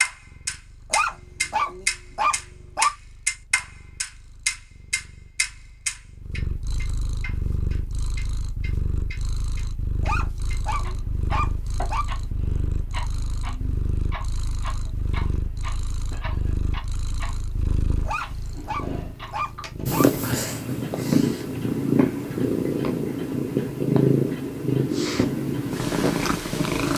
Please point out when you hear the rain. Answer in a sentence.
You can't hear the rain here.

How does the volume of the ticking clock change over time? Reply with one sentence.
The volume of the ticking clock goes down.